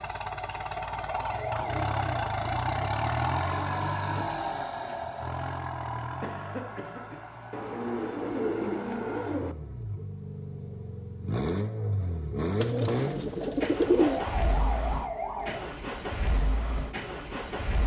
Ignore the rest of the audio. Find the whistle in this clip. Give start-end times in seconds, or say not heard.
not heard.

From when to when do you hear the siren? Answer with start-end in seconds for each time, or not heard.
0.0-3.8, 13.8-15.7.